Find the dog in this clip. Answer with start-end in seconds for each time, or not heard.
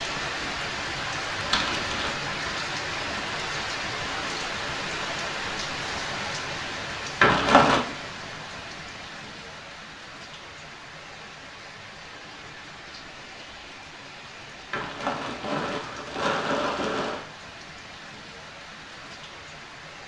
not heard.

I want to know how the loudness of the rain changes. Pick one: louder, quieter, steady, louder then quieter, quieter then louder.
quieter.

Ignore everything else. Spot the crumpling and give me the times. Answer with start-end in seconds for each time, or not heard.
1.4-2.2, 7.2-7.8, 14.7-17.2.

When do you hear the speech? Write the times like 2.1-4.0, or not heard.
not heard.